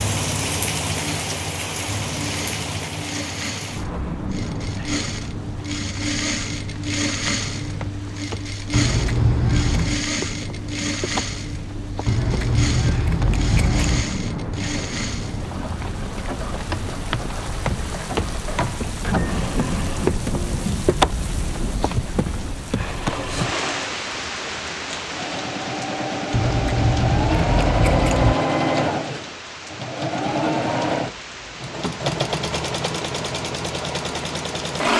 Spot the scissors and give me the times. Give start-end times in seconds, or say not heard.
8.7-10.0, 12.1-14.1, 26.3-28.4.